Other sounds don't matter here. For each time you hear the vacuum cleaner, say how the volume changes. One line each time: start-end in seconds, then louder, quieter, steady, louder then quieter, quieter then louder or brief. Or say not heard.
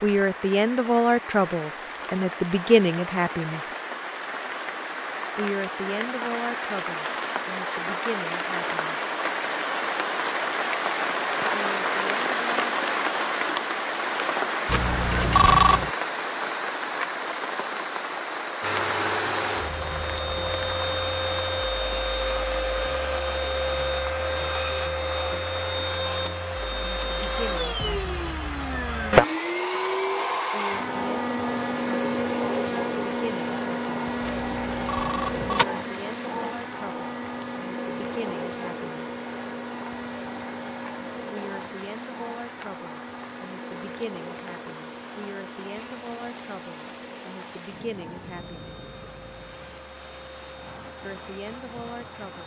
18.6-52.4 quieter.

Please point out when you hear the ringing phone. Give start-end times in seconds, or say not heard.
14.7-15.9, 34.2-35.6.